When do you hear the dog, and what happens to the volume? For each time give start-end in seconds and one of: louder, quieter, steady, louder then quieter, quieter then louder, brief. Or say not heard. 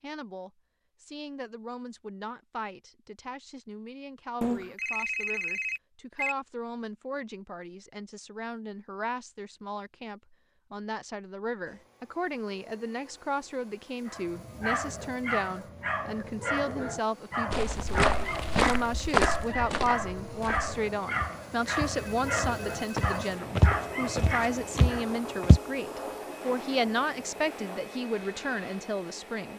14.1-25.1 steady.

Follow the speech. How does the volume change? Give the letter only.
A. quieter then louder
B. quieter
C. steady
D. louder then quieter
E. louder
E.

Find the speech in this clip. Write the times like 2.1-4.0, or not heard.
0.0-29.5.